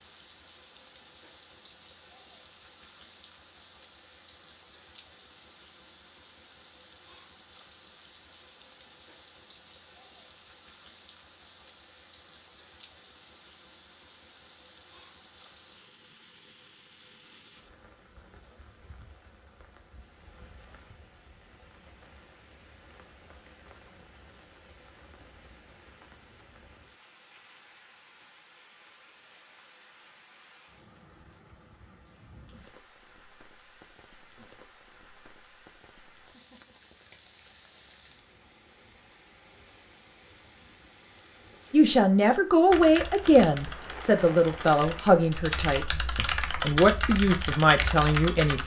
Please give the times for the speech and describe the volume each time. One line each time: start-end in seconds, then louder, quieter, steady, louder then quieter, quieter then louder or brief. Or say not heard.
41.7-48.6 steady.